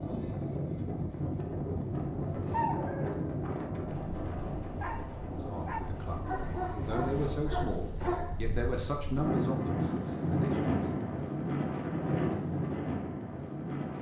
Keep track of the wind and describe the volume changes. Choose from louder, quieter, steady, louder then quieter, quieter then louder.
quieter then louder.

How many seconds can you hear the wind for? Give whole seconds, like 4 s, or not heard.
14 s.